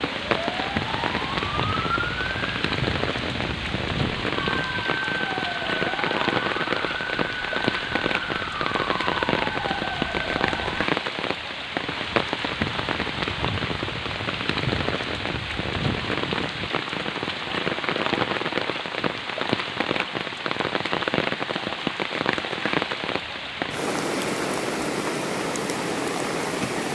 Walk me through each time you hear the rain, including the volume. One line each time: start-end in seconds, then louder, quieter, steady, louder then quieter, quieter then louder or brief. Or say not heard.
0.0-26.8 steady.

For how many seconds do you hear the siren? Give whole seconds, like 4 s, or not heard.
11 s.